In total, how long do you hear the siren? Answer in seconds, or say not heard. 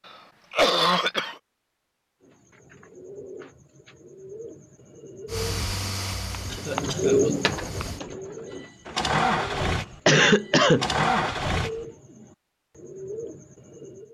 not heard.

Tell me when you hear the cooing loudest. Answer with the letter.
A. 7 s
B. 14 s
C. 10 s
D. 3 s
A.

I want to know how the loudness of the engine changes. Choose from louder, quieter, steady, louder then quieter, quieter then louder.
quieter then louder.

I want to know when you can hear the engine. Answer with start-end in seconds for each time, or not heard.
5.2-11.8.